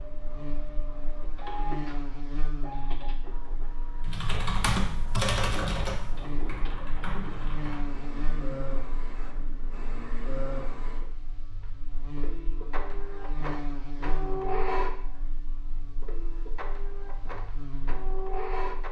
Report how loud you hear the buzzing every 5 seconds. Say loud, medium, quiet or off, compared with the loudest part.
loud, loud, loud, medium.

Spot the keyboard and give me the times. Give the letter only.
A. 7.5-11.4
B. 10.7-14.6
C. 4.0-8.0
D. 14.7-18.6
C.